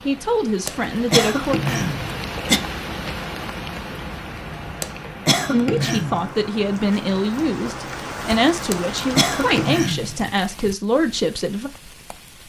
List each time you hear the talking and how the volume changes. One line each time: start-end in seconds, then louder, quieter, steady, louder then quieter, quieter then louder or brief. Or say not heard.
0.1-1.6 brief
5.5-11.7 steady.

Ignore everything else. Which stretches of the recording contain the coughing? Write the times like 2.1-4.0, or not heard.
0.7-2.6, 4.8-6.2, 8.7-10.2.